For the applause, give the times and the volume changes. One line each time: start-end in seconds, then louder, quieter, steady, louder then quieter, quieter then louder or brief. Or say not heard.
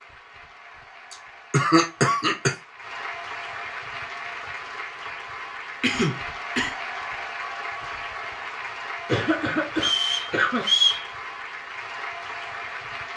0.0-13.1 louder.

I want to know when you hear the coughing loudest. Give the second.
2 s.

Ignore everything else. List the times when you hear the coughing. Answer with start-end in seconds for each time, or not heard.
1.1-2.5, 5.8-6.7, 9.1-10.7.